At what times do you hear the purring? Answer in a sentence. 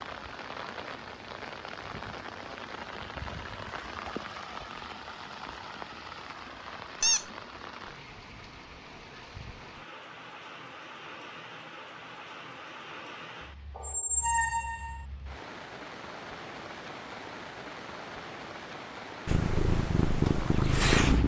You can hear the purring from 19.2 to 21.2 s.